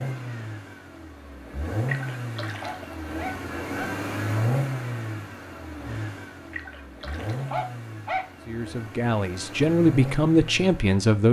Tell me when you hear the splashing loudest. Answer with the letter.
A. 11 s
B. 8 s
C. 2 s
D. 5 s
C.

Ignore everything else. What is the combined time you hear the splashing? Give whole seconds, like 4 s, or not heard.
2 s.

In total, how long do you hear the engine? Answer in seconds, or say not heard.
11 s.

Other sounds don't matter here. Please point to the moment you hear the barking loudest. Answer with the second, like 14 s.
8 s.